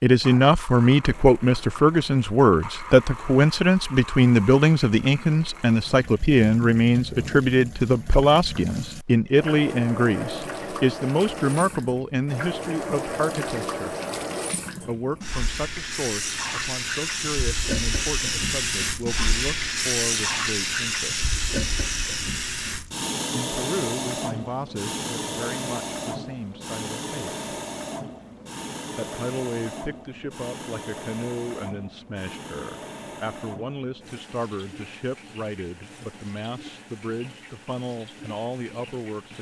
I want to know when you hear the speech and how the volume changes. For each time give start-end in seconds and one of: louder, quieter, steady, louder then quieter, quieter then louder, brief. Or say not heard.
0.0-13.9 quieter
14.8-21.2 steady
23.3-27.4 quieter
28.9-39.3 steady.